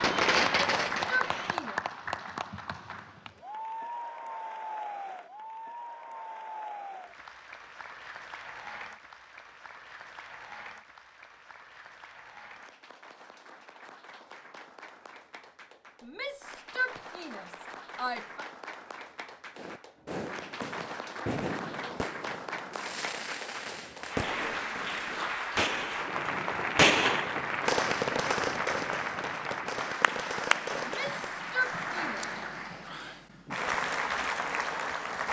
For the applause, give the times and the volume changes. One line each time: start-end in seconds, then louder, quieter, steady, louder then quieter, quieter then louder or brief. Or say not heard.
0.0-35.2 quieter then louder.